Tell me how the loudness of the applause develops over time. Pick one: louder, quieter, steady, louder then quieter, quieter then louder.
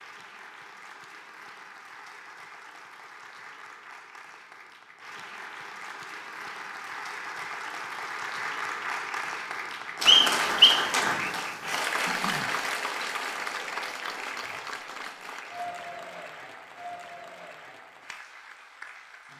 louder then quieter.